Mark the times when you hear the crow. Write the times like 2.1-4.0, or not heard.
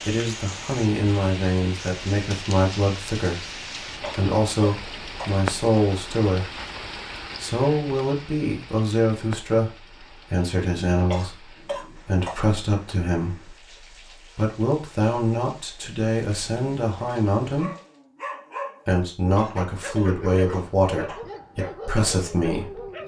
not heard.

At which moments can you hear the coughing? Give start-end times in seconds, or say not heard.
4.0-5.8, 11.1-12.4, 19.4-21.2.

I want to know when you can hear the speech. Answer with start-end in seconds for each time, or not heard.
0.0-6.5, 7.3-13.6, 14.3-17.7, 18.9-23.0.